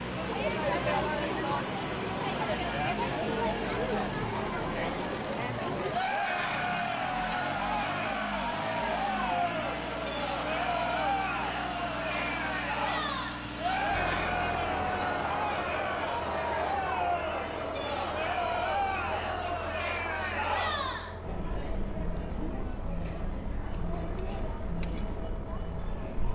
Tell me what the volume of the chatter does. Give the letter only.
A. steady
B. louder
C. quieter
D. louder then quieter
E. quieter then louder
C.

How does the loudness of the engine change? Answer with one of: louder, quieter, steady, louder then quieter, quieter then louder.
quieter.